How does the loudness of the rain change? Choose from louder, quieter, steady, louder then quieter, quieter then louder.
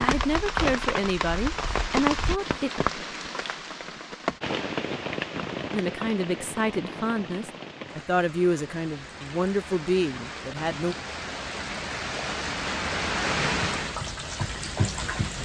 quieter then louder.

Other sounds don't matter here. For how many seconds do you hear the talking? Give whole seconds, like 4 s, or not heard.
8 s.